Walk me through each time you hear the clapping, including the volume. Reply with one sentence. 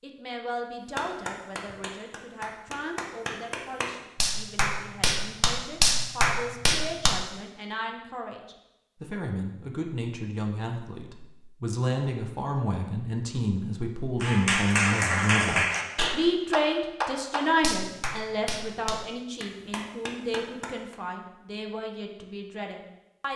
You can hear the clapping from 0.9 to 7.2 s, getting louder; and from 14.2 to 20.9 s, getting quieter.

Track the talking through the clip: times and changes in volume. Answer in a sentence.
The talking can be heard from 0.0 to 23.3 s, getting louder then quieter.